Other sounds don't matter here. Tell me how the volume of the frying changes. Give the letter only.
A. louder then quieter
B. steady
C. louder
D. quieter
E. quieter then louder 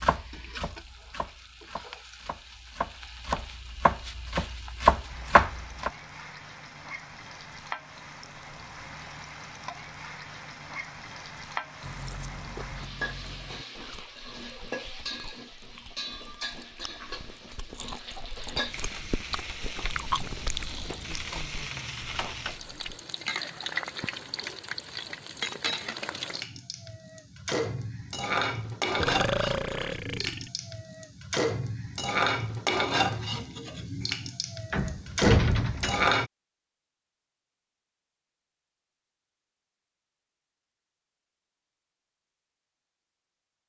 C.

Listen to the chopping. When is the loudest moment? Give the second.
5 s.